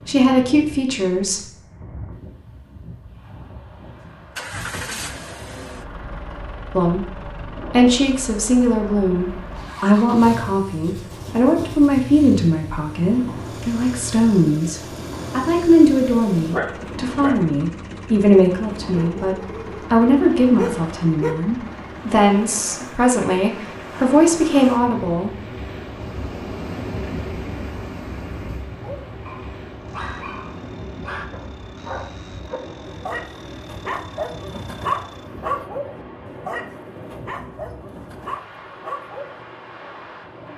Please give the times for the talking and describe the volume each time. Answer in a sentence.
You can hear the talking briefly from 0.1 to 1.4 s; and from 6.7 to 25.4 s, at a steady volume.